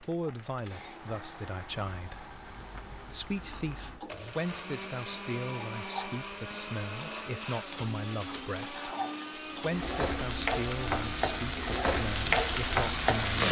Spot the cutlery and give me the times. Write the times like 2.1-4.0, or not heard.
not heard.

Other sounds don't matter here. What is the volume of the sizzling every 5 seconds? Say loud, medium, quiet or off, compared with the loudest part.
quiet, quiet, loud.